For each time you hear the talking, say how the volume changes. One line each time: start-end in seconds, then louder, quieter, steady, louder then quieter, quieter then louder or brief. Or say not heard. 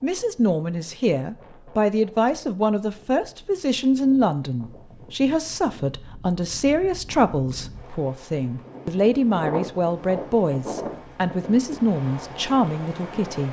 0.0-13.4 steady.